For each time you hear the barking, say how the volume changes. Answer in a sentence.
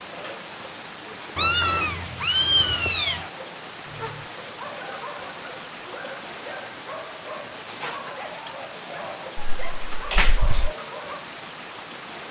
The barking can be heard from 3.9 to 11.2 s, at a steady volume.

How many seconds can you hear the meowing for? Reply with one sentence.
The meowing can be heard for 3 seconds in total.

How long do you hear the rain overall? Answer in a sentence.
You can hear the rain for 12 seconds altogether.